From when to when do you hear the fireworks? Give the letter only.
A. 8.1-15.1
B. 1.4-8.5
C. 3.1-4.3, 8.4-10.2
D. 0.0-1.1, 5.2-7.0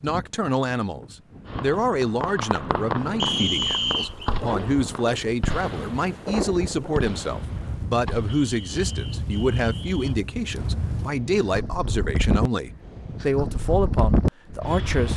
B.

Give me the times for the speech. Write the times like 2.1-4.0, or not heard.
0.0-15.1.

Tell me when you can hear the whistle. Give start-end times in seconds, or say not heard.
3.1-4.3, 8.4-10.2.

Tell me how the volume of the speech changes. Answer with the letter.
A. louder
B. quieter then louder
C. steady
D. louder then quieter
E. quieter
C.